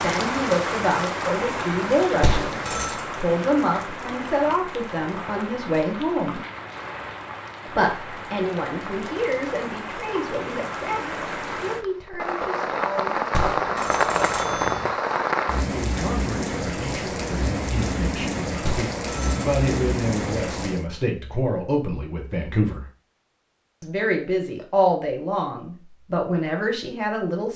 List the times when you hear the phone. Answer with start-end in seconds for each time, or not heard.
2.2-3.0, 13.3-14.9, 18.6-19.5.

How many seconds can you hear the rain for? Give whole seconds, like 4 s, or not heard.
21 s.